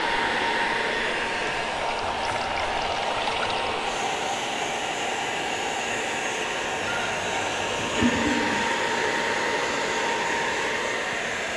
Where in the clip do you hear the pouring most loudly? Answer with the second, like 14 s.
8 s.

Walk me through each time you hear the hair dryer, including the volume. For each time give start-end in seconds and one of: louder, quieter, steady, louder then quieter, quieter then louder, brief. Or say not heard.
0.0-11.5 steady.